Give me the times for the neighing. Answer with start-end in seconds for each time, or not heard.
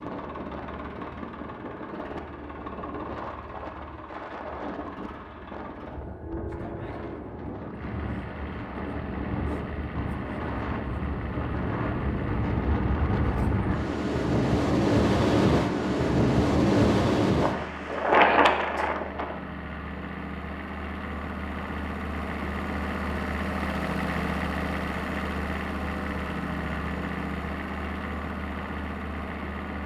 not heard.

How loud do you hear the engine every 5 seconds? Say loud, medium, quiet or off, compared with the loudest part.
medium, medium, medium, medium, loud, loud.